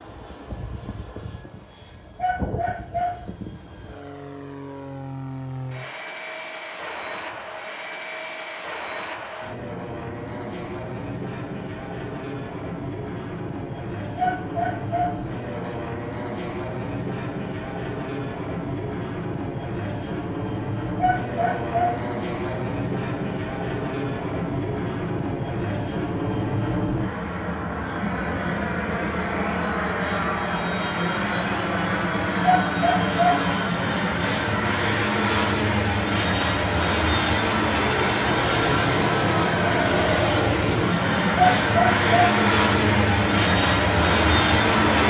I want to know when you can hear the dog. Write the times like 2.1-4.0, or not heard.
2.1-3.3, 14.2-15.8, 20.9-22.6, 32.4-34.0, 41.4-43.0.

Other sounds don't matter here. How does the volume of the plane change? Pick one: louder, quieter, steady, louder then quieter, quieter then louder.
louder.